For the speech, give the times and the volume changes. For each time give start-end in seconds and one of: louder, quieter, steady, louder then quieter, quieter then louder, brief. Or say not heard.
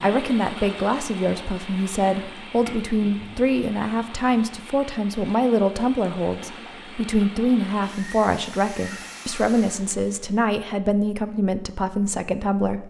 0.0-12.8 steady.